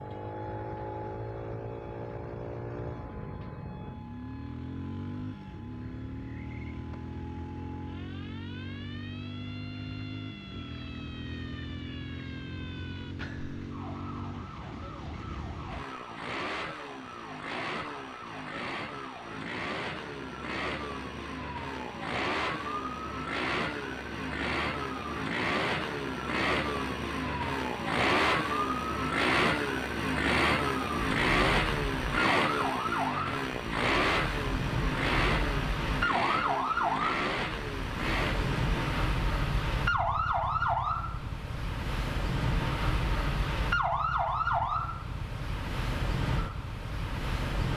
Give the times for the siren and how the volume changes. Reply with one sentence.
The siren can be heard from 0.0 to 47.7 s, getting louder.